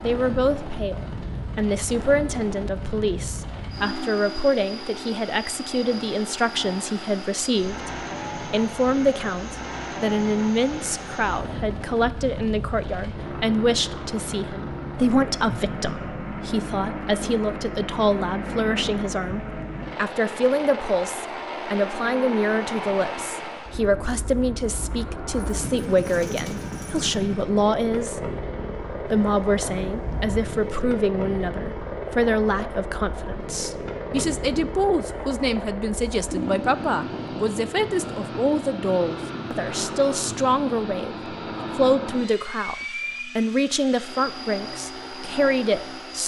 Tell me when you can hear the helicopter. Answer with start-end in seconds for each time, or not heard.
0.0-46.2.